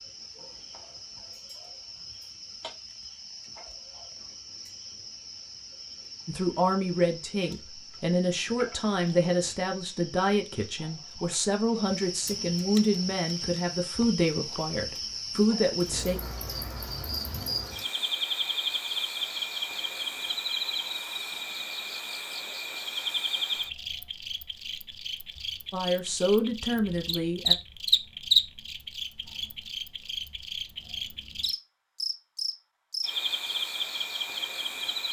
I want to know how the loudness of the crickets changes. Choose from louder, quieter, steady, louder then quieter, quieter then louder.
louder.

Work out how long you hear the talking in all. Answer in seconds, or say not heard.
12 s.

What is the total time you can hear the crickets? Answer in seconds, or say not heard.
35 s.